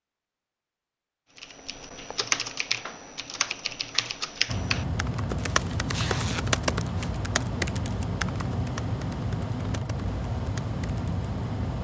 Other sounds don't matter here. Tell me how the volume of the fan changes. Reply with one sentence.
The loudness of the fan stays about the same.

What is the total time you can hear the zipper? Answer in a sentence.
The zipper can be heard for 2 seconds in total.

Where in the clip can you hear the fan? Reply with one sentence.
You can hear the fan from 4.5 to 11.7 s.